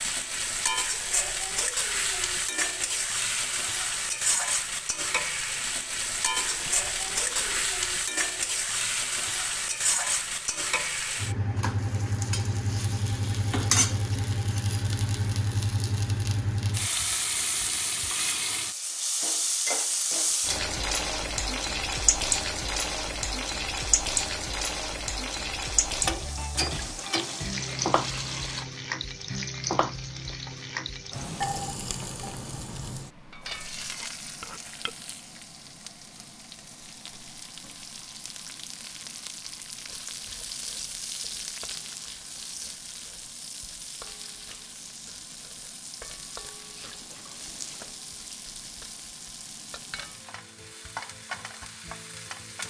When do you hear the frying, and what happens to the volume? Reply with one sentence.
You can hear the frying from 0.0 to 52.6 s, getting quieter.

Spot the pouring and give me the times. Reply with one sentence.
You can hear the pouring from 6.3 to 7.7 s, from 26.7 to 28.6 s and from 46.8 to 48.0 s.